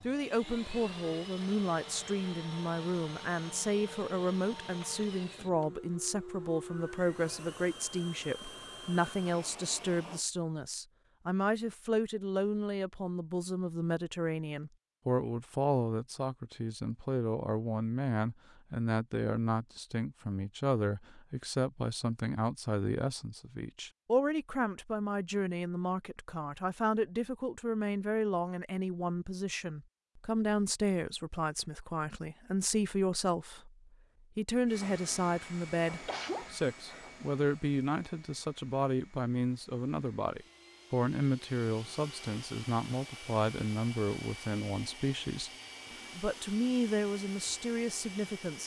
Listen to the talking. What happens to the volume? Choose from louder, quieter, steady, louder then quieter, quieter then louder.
steady.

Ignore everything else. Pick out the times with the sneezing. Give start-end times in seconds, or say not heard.
36.0-37.1.